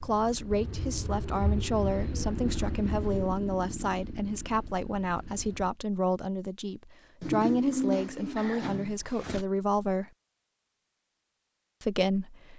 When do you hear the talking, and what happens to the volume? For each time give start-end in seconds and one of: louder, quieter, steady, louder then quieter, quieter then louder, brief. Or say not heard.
0.0-10.1 steady
11.8-12.5 brief.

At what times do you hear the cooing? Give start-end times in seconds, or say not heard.
0.5-3.4, 7.2-9.4.